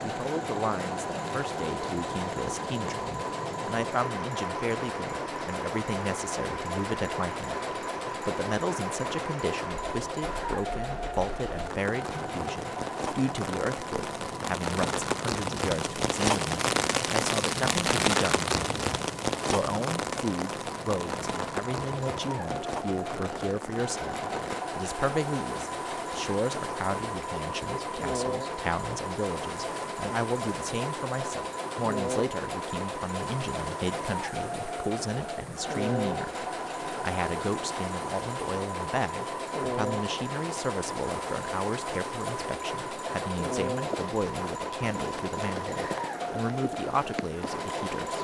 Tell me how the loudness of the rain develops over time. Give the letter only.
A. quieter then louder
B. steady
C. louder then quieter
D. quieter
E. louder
C.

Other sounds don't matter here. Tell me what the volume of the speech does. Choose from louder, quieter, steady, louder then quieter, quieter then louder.
steady.